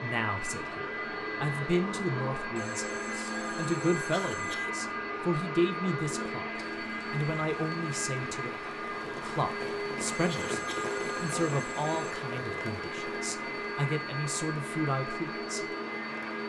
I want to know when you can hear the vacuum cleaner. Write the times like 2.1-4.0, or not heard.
0.0-16.4.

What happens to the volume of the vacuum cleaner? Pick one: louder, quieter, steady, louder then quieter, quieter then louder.
steady.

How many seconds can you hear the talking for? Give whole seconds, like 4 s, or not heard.
16 s.